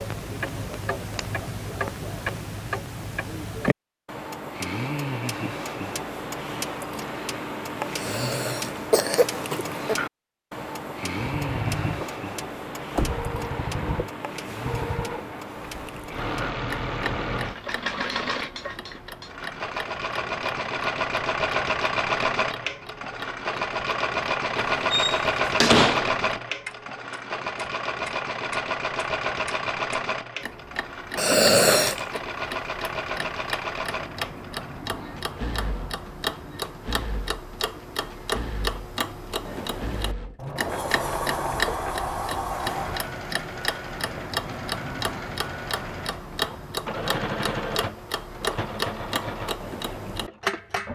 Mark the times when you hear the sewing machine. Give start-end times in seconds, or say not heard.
11.2-50.8.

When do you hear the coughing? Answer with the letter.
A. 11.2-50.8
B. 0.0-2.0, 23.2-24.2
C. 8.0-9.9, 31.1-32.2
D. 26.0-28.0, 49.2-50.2
C.